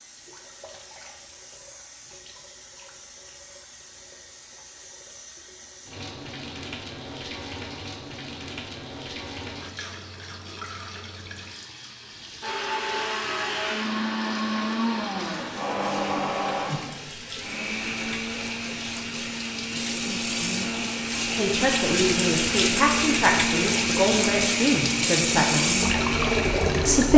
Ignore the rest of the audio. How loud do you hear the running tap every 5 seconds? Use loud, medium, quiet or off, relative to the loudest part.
quiet, quiet, quiet, quiet, loud, loud.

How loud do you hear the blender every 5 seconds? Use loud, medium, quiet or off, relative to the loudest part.
off, off, loud, loud, loud, loud.